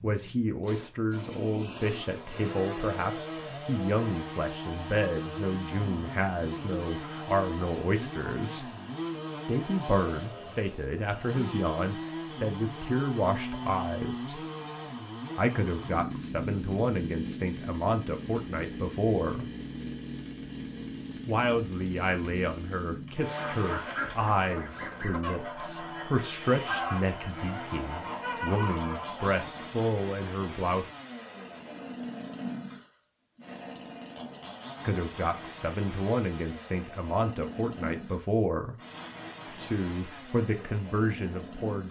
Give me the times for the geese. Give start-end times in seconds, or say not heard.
23.3-29.4.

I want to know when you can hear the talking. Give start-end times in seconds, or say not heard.
0.0-8.7, 9.4-14.4, 15.3-19.4, 21.2-30.9, 34.8-38.8, 39.6-41.8.